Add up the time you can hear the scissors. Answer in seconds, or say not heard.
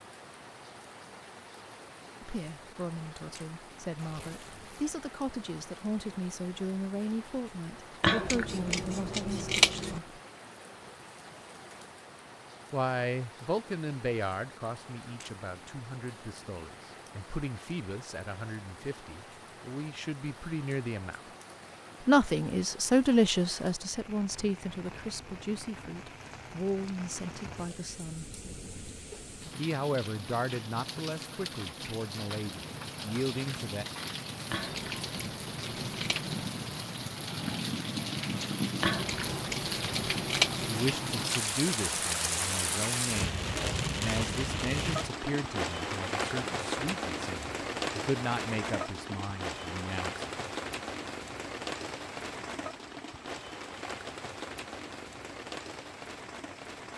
6 s.